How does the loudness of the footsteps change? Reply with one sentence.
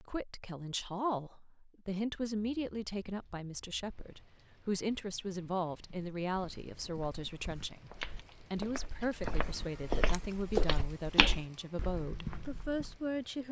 The volume of the footsteps goes up, then down.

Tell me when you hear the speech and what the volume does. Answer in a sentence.
You can hear the speech from 0.0 to 13.4 s, at a steady volume.